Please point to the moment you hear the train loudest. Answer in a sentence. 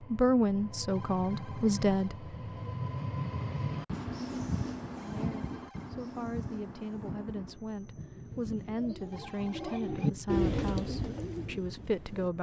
The loudest moment of the train is at 3 seconds.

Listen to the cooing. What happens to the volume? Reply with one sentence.
The volume of the cooing goes up, then down.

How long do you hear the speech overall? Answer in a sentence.
The speech can be heard for 10 seconds in total.